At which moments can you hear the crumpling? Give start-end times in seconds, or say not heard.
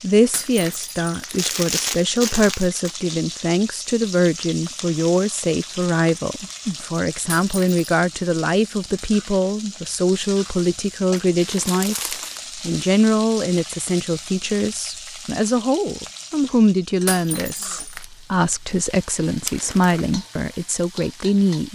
1.4-3.0, 11.1-12.4, 19.4-20.1.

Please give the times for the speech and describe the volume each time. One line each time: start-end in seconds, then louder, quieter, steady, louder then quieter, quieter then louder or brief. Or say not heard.
0.0-21.7 steady.